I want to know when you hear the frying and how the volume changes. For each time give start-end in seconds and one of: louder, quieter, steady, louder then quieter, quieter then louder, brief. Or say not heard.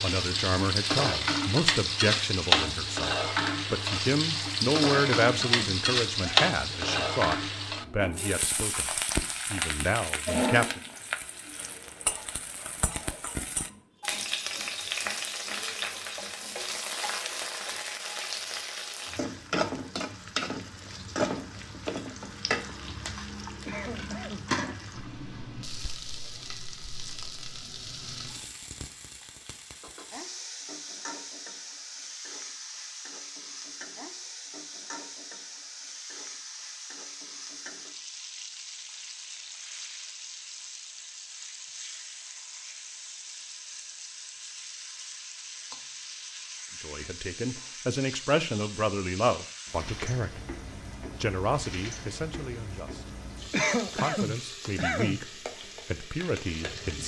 0.0-57.0 quieter.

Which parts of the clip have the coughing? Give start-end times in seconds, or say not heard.
5.0-6.5, 23.6-24.4, 53.5-55.2.